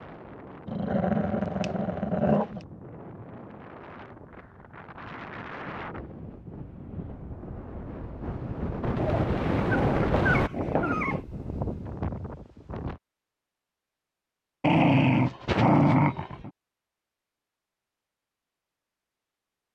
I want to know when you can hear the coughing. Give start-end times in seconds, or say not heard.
not heard.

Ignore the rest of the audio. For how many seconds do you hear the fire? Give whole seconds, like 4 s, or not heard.
not heard.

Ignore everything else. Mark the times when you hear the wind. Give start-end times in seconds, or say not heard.
0.0-13.0.